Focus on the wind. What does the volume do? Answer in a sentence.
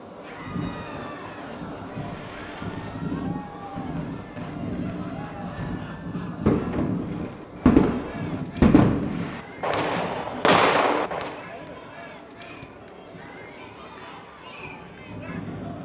The volume of the wind goes down.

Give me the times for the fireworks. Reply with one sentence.
You can hear the fireworks from 1.9 to 11.4 s.